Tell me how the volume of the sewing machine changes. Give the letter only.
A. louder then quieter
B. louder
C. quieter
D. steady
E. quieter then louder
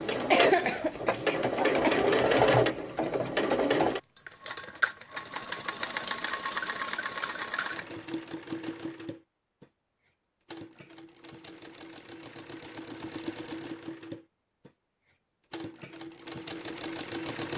C.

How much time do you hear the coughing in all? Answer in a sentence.
The coughing can be heard for 2 seconds in total.